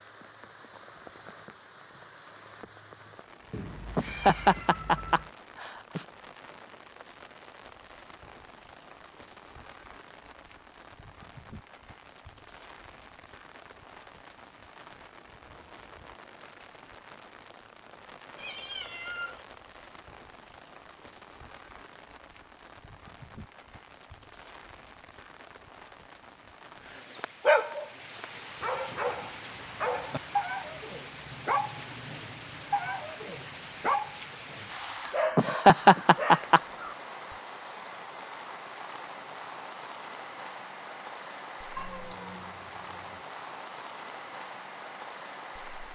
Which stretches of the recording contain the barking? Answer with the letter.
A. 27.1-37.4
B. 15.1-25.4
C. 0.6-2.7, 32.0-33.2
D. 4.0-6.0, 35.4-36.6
A.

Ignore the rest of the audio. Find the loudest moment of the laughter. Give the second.
36 s.